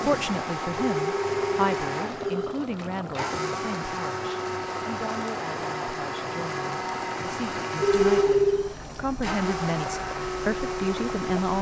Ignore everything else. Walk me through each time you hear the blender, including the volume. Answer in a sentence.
You can hear the blender from 0.0 to 11.5 s, at a steady volume.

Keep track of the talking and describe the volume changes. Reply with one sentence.
The volume of the talking goes down, then up.